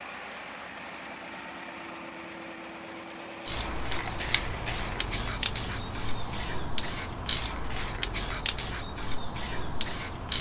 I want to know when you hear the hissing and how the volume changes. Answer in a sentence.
You can hear the hissing from 3.5 to 10.3 s, at a steady volume.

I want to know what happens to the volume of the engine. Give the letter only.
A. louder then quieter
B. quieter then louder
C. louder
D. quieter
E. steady
E.